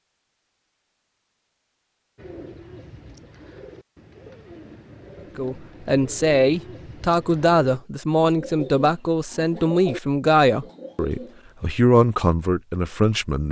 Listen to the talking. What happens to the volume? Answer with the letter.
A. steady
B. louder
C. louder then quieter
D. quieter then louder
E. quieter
A.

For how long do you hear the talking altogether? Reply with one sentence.
You can hear the talking for 8 seconds altogether.